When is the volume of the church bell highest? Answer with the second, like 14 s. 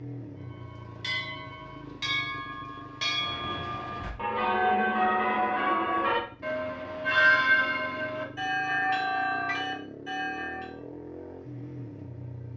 7 s.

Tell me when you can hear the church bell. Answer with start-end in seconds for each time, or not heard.
0.5-10.8.